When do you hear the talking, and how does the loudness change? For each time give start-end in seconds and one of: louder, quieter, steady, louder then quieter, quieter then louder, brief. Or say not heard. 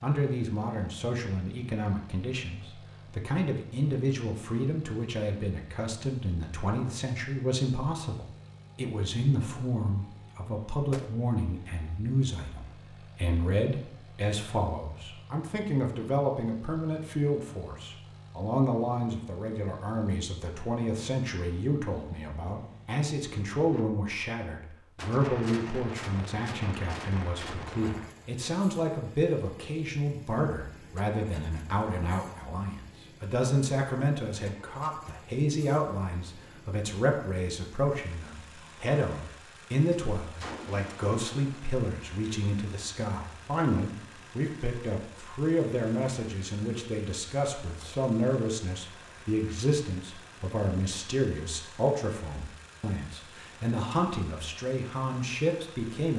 0.0-56.1 steady.